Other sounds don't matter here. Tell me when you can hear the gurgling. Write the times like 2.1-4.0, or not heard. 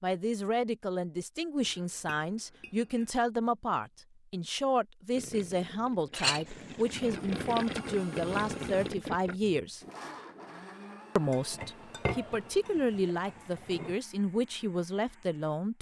5.1-9.4.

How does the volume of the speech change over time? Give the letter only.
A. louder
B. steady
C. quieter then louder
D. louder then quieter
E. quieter
B.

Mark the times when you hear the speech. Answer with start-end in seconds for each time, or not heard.
0.0-9.8, 11.2-15.7.